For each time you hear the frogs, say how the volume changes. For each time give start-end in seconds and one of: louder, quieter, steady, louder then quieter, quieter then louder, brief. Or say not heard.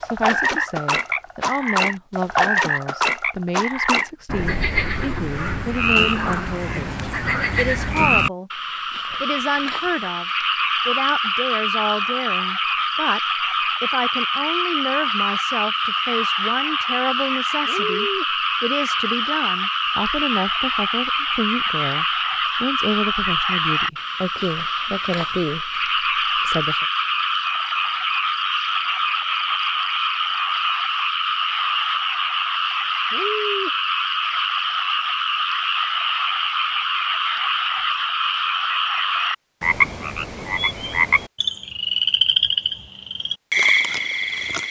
0.0-44.6 steady.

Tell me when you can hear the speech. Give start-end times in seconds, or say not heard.
0.0-8.5, 9.2-13.2, 13.8-26.9.